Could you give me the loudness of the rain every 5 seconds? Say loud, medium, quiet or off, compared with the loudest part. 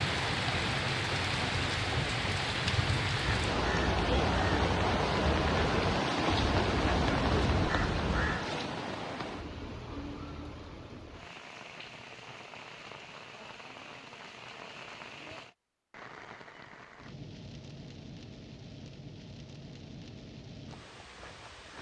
loud, loud, quiet, quiet, quiet.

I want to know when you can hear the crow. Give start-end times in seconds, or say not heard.
3.1-8.4.